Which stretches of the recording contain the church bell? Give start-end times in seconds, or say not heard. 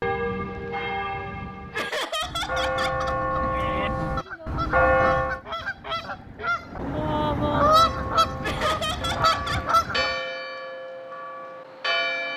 0.0-5.4, 7.7-12.3.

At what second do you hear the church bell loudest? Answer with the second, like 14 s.
5 s.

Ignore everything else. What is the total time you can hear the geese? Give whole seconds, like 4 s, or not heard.
7 s.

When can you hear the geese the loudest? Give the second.
8 s.